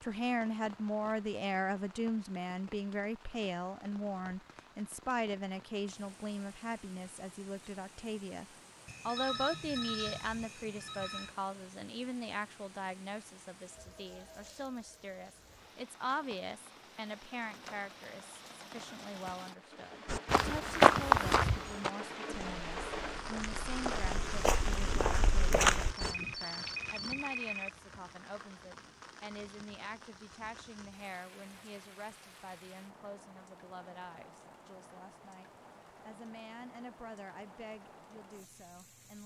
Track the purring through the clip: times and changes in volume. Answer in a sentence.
You can't hear the purring here.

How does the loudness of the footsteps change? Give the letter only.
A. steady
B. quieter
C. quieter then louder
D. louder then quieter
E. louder
C.